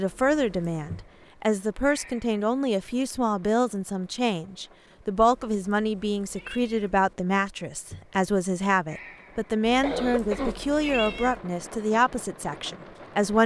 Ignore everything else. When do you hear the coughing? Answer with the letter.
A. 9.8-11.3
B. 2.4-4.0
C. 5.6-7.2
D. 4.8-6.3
A.